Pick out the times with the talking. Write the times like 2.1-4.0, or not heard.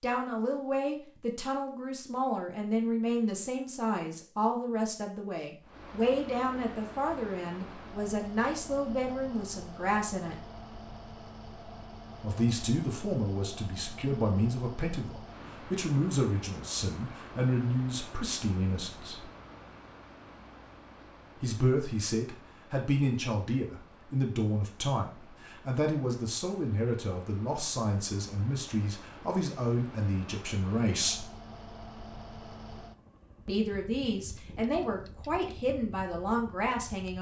0.0-10.3, 12.2-19.3, 21.4-31.2, 33.5-37.1.